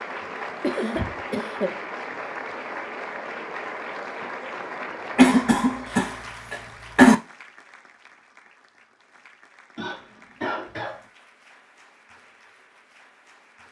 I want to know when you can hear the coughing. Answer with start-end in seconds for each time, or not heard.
0.6-1.8, 5.2-7.2, 9.8-11.0.